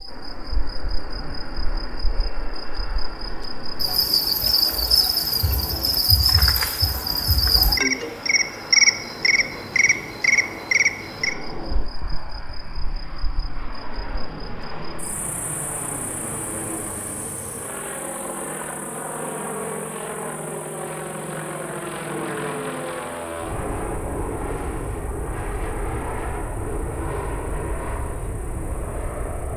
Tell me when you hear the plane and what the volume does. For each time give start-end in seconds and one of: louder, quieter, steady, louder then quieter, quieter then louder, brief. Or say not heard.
0.0-29.5 louder.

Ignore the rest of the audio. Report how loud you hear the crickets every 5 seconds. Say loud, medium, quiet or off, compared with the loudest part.
medium, loud, medium, quiet, quiet, quiet.